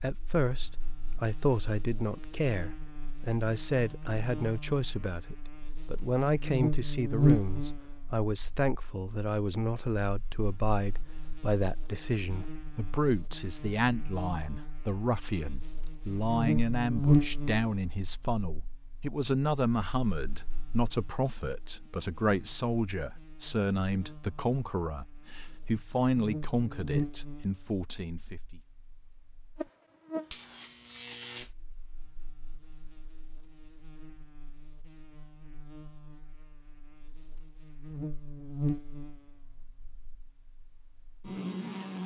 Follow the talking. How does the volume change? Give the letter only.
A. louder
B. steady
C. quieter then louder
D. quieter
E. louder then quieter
B.